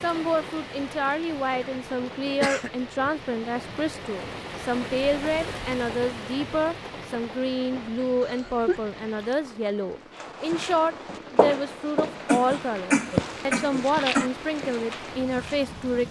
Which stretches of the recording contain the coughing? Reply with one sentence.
You can hear the coughing from 2.2 to 2.7 s, from 8.2 to 8.9 s and from 12.2 to 14.3 s.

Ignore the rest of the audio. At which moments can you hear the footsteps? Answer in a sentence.
You can hear the footsteps from 10.2 to 16.0 s.